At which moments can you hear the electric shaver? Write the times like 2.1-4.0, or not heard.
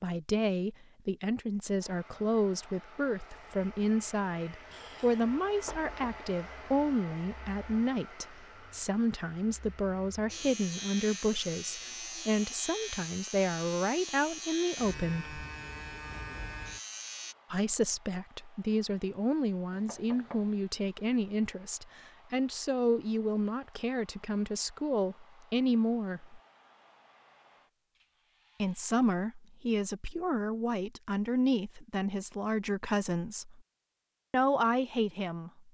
10.2-17.4.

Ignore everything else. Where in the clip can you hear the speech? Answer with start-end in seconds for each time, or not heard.
0.0-15.4, 17.5-26.4, 28.6-33.6, 34.3-35.6.